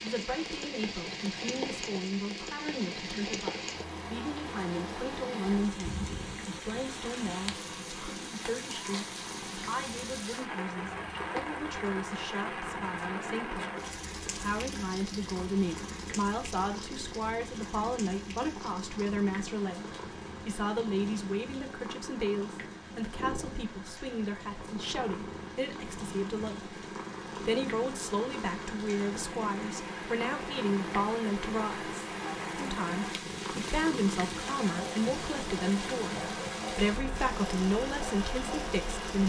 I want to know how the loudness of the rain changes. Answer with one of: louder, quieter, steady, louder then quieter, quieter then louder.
quieter then louder.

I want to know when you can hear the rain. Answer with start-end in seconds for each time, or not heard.
0.0-39.2.